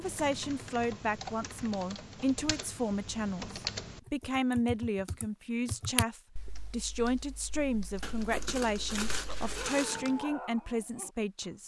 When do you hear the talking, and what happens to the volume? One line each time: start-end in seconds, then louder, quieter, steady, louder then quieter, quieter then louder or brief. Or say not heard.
0.0-11.6 steady.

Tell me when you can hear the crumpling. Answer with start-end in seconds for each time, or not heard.
8.0-10.1.